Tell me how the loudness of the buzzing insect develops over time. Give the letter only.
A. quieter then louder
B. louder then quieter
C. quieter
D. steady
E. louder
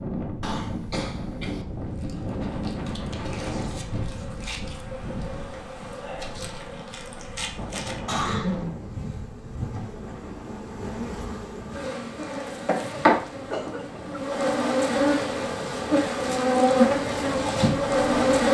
E.